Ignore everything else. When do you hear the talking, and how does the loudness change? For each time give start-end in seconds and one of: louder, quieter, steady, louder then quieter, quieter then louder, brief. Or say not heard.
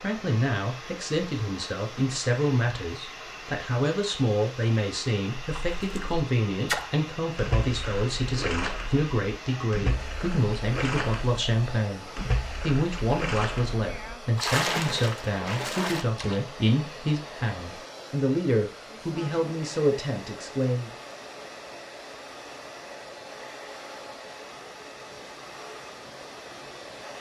0.0-20.9 steady.